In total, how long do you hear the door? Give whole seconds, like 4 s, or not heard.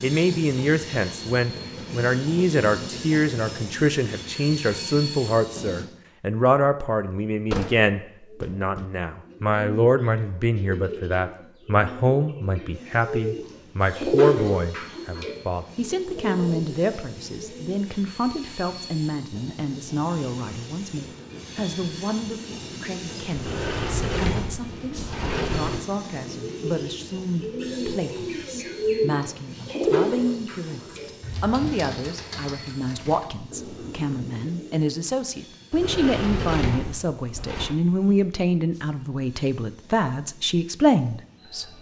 6 s.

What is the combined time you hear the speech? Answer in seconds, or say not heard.
42 s.